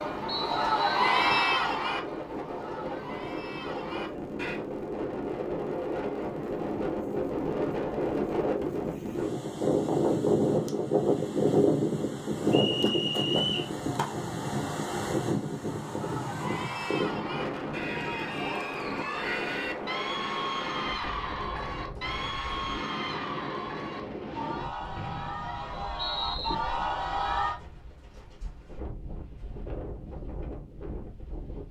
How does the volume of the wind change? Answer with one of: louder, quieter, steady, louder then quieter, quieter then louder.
louder then quieter.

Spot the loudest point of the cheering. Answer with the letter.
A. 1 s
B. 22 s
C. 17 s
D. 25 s
A.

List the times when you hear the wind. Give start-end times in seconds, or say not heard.
0.0-31.6.